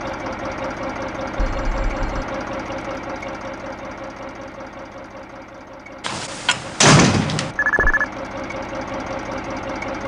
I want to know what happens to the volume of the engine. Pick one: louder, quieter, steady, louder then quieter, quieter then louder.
quieter then louder.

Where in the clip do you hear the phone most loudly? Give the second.
8 s.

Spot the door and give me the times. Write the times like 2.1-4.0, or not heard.
6.0-7.5.